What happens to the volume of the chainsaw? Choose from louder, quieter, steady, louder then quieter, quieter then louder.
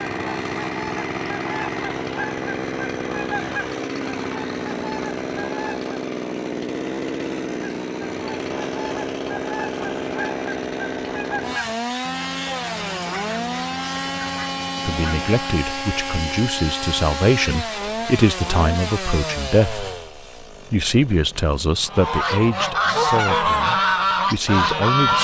quieter.